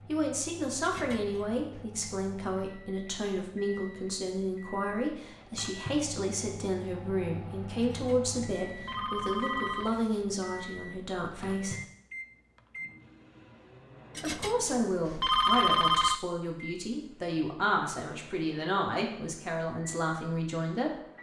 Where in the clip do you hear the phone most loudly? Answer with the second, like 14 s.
16 s.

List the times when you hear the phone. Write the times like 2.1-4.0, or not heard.
0.8-1.9, 7.9-10.2, 14.2-16.2.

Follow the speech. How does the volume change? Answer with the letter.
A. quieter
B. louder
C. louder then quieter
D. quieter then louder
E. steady
E.